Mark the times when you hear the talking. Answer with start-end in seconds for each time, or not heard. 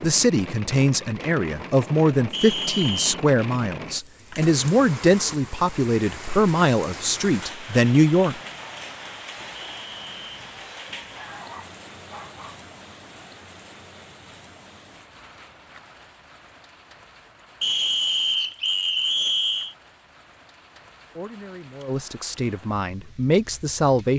0.0-8.3, 21.1-24.1.